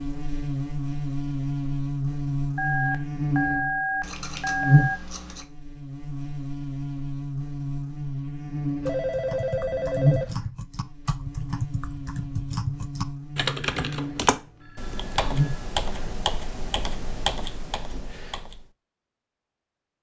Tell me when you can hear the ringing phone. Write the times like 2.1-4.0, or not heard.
2.5-5.0, 8.8-10.5, 14.4-15.7.